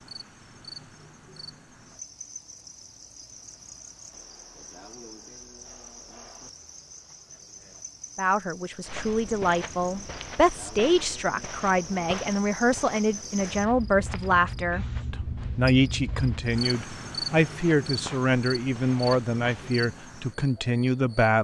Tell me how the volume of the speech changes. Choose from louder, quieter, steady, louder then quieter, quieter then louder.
steady.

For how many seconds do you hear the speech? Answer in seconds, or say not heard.
13 s.